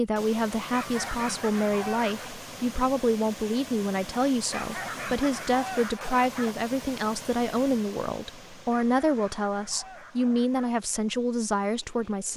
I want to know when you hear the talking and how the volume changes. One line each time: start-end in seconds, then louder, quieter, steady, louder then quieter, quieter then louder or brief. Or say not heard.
0.0-12.3 steady.